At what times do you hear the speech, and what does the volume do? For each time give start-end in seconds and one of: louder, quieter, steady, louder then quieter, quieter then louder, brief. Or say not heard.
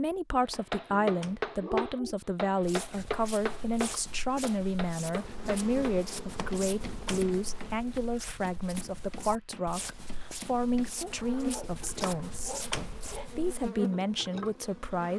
0.0-15.1 steady.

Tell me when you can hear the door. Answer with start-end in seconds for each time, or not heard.
0.5-1.6, 6.3-7.3, 12.0-13.2.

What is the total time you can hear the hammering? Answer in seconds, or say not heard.
11 s.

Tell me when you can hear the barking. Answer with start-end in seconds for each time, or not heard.
0.8-2.1, 11.0-13.3.